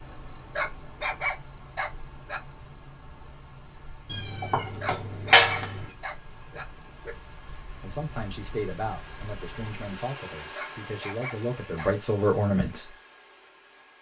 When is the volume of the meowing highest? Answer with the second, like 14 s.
5 s.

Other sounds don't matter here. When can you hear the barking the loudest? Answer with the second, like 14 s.
1 s.